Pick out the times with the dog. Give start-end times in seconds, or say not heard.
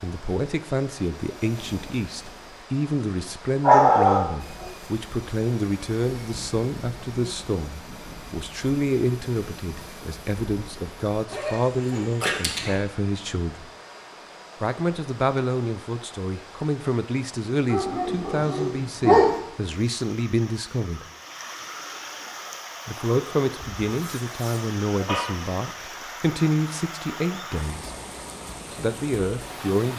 3.6-4.7, 11.3-12.8, 17.7-19.4, 23.6-25.4.